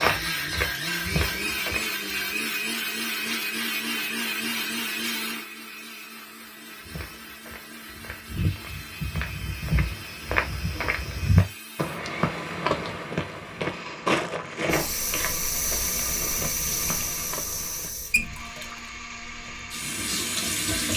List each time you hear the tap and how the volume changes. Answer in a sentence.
You can hear the tap from 14.7 to 20.9 s, getting quieter then louder.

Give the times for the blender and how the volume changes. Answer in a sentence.
The blender can be heard from 0.0 to 20.9 s, getting quieter.